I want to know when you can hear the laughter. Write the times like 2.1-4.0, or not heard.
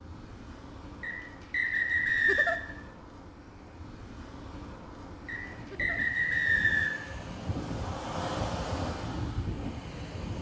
2.1-2.6, 5.6-6.0.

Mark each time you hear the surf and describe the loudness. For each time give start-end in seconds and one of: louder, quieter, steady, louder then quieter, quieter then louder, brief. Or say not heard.
0.0-10.3 louder.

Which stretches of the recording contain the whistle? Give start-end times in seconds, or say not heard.
1.0-2.6, 5.2-7.1.